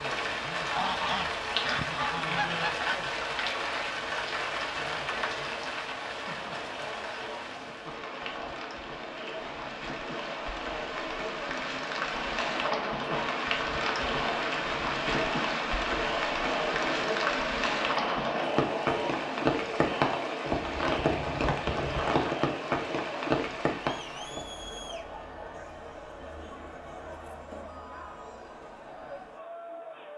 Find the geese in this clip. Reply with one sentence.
The geese can be heard from 0.6 to 3.1 s.